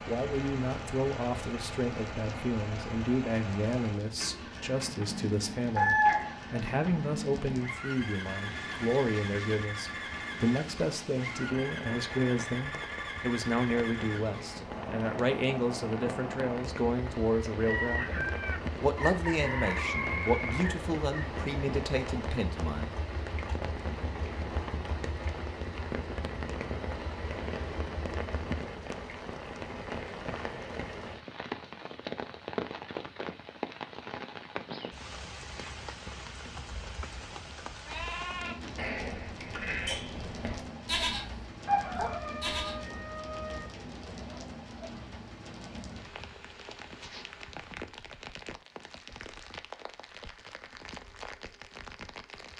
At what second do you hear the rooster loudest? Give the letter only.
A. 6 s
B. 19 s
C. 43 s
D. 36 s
A.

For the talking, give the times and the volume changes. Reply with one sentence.
You can hear the talking from 0.1 to 23.0 s, at a steady volume.